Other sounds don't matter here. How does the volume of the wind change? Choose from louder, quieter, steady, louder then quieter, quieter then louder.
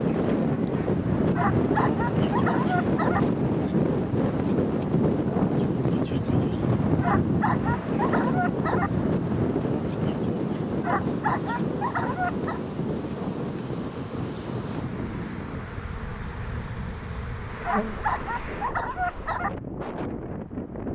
quieter.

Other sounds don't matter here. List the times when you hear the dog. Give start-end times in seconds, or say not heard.
1.4-3.2, 7.0-8.9, 10.8-12.6, 17.6-19.5.